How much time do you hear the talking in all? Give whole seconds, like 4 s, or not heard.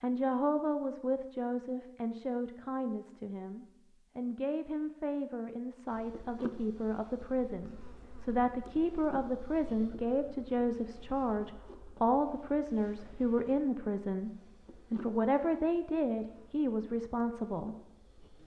18 s.